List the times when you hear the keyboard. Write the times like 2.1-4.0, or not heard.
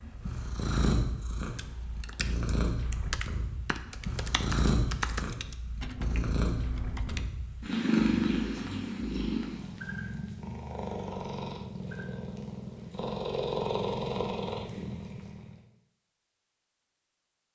1.6-7.3.